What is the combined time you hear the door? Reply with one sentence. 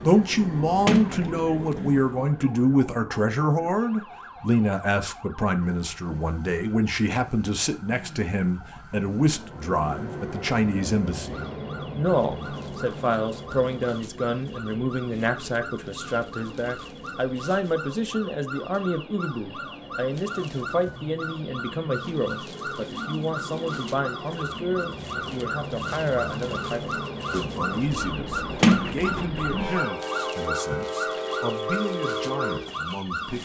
The door can be heard for 2 seconds in total.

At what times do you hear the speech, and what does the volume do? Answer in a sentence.
You can hear the speech from 0.0 to 33.4 s, getting quieter.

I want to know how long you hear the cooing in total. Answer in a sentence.
The cooing can't be heard in this clip.